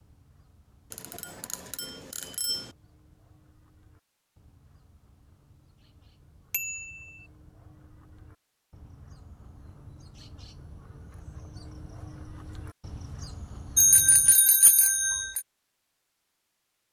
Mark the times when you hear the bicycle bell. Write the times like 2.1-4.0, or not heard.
0.9-2.7, 6.5-7.2, 13.8-15.4.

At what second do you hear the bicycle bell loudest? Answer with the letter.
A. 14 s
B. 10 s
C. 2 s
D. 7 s
A.